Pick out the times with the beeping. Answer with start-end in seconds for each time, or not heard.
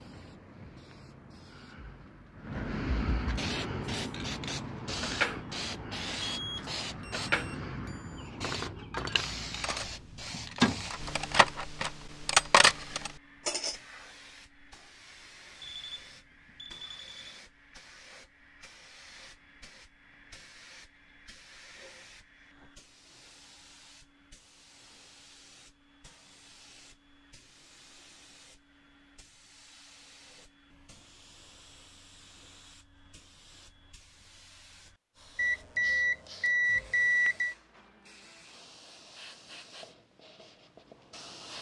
6.3-8.3, 15.6-17.4, 35.4-37.5.